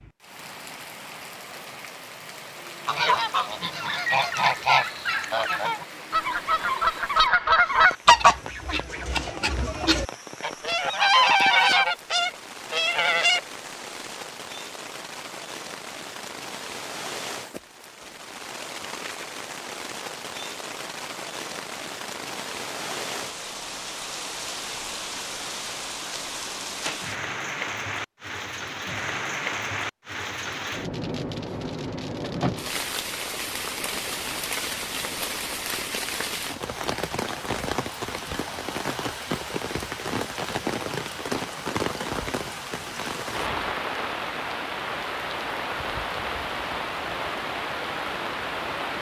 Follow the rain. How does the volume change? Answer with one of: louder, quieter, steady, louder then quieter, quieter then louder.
louder.